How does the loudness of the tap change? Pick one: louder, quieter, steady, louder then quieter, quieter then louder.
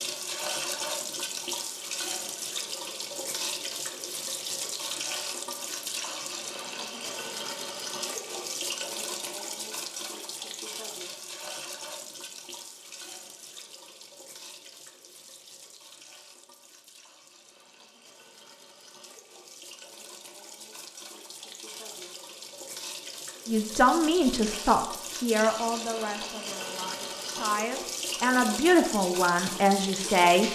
quieter then louder.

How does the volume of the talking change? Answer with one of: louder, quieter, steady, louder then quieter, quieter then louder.
quieter then louder.